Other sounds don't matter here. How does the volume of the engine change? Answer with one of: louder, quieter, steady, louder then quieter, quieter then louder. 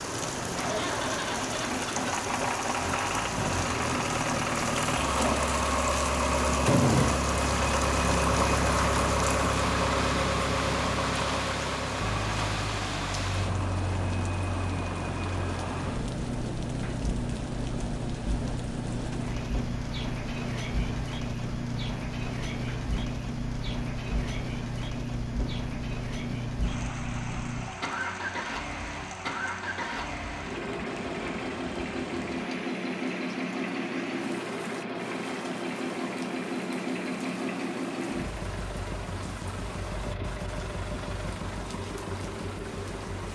quieter.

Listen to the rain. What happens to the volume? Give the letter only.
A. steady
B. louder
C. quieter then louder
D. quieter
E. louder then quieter
D.